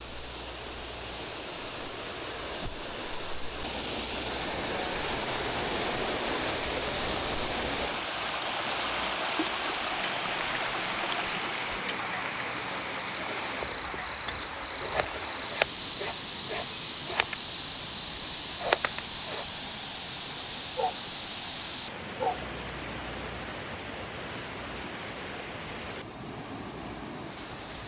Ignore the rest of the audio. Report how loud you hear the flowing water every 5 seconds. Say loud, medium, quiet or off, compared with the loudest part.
medium, loud, loud, medium, medium, medium.